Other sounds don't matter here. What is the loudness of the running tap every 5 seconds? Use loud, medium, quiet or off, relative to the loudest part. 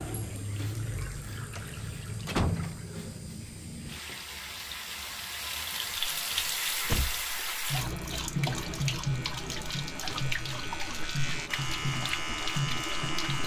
medium, loud, loud.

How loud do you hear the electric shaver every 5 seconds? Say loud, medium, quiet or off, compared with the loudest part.
quiet, medium, loud.